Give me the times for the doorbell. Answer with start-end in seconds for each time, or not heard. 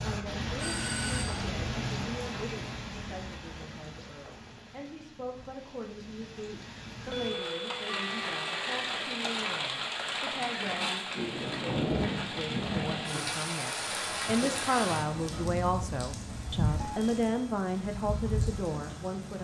0.6-1.4, 7.1-8.8, 16.8-17.3.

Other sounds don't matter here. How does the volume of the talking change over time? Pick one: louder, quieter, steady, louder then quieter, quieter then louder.
louder.